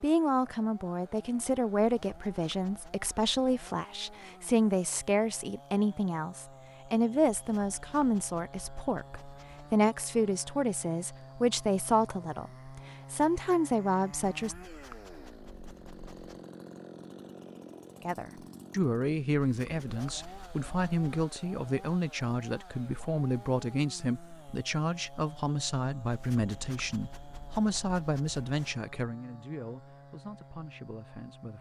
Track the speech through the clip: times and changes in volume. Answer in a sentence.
The speech can be heard from 0.0 to 14.6 s, at a steady volume; and from 18.0 to 31.5 s, getting quieter.